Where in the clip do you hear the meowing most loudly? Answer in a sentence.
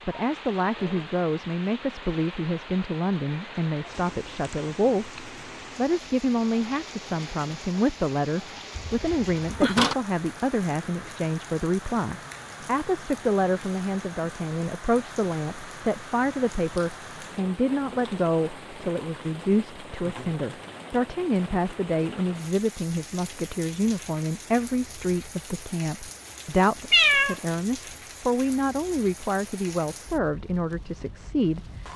The volume of the meowing peaks at 27 seconds.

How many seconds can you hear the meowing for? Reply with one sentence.
The meowing can be heard for 2 seconds in total.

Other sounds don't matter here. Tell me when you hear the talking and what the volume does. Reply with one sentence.
You can hear the talking from 0.1 to 31.6 s, at a steady volume.